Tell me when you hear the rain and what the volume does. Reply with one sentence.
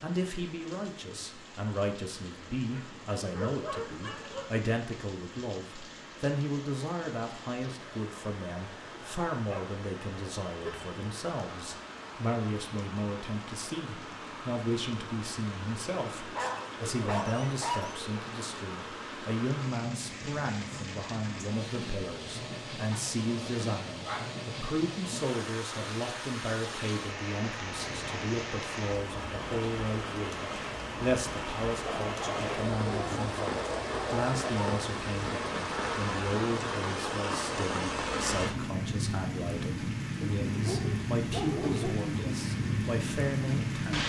You can hear the rain from 0.0 to 44.0 s, getting louder.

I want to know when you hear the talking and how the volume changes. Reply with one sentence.
The talking can be heard from 0.0 to 44.0 s, at a steady volume.